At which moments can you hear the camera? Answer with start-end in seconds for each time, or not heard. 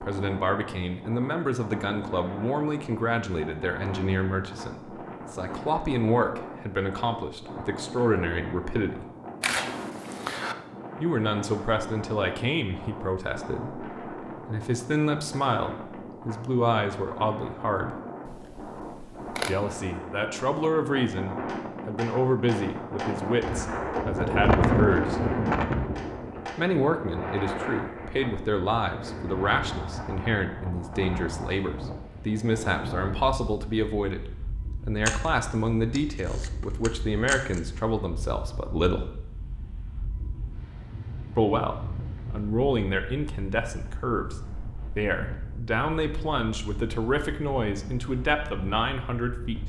9.4-10.6, 18.2-19.6, 35.0-37.8.